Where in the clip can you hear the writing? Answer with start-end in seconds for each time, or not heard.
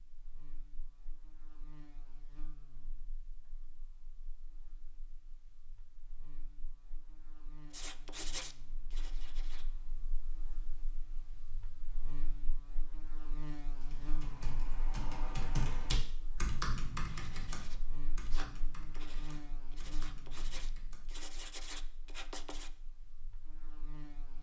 7.7-9.7, 17.0-22.7.